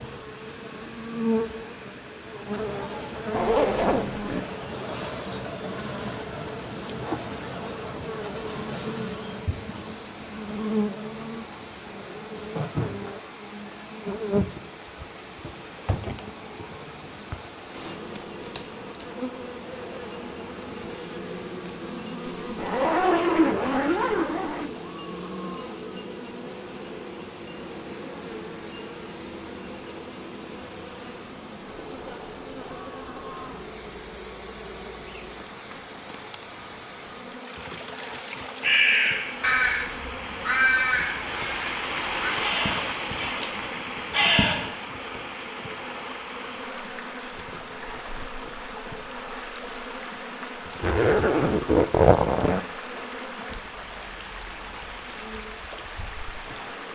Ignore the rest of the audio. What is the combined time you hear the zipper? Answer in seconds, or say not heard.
5 s.